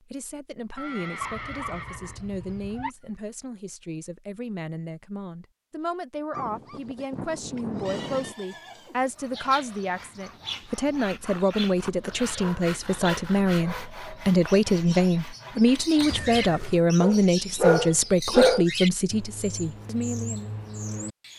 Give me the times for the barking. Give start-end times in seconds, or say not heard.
1.2-2.9, 6.3-8.3, 11.8-13.9, 17.0-18.6.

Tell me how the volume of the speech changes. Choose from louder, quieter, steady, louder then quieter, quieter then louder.
louder.